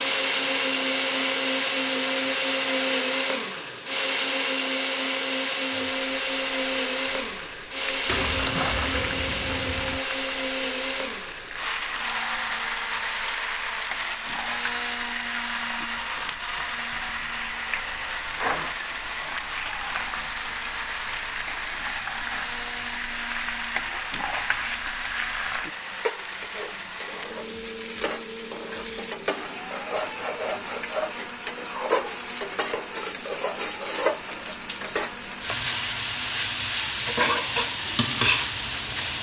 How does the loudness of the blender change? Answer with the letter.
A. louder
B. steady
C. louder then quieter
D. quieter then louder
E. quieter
E.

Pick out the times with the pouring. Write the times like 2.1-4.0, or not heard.
8.1-10.0.